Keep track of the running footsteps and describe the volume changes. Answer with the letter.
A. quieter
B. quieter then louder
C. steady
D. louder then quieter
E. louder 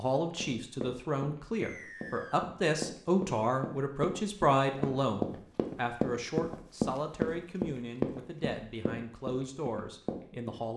D.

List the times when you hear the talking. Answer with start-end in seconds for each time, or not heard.
0.0-10.7.